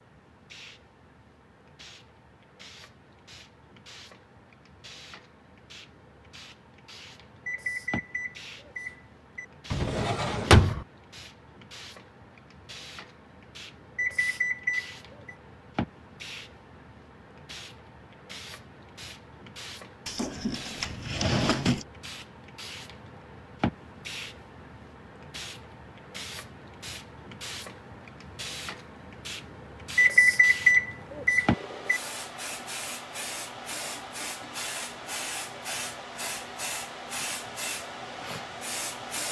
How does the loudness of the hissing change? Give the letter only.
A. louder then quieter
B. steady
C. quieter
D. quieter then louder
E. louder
E.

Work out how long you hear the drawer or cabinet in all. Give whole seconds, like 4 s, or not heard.
3 s.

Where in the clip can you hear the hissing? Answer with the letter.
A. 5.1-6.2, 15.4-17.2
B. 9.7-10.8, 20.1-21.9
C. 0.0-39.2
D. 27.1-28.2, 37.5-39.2
C.